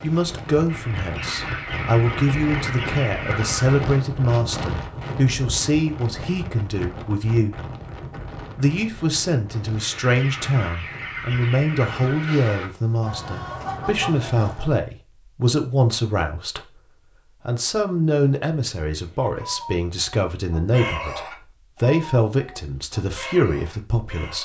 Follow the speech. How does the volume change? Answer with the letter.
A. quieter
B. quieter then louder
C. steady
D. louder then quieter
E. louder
C.